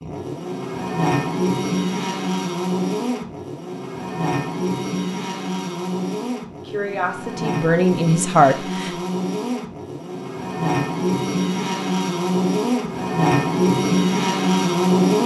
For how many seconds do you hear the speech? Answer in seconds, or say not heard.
2 s.